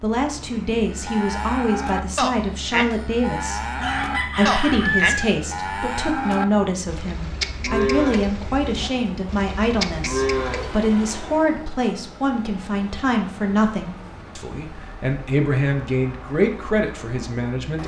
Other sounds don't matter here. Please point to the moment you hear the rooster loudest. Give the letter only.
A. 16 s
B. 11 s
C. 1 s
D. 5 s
D.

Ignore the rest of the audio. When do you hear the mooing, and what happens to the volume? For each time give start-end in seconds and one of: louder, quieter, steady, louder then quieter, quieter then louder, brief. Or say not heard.
0.9-10.8 steady.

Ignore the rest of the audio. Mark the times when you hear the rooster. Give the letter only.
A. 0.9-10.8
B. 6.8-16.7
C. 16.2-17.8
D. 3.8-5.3
D.